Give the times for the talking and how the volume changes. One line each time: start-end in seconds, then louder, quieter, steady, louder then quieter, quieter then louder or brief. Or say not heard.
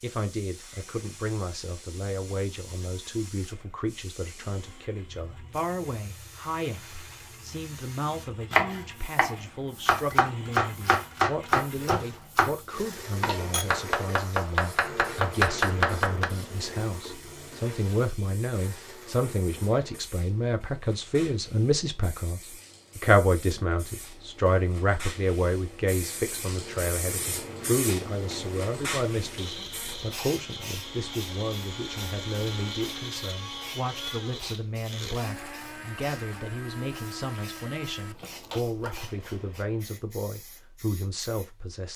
0.0-41.9 louder then quieter.